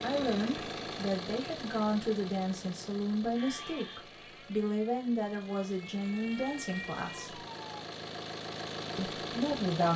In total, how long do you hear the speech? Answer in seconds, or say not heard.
8 s.